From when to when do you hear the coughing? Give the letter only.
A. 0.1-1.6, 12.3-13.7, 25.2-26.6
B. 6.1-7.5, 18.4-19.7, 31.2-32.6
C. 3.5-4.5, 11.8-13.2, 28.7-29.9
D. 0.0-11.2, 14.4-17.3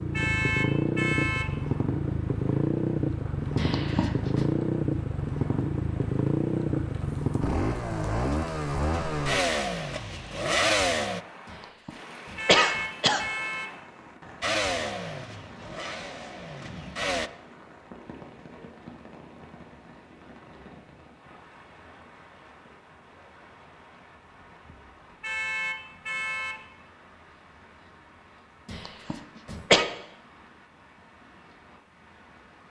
C.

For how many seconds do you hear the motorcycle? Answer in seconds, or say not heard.
14 s.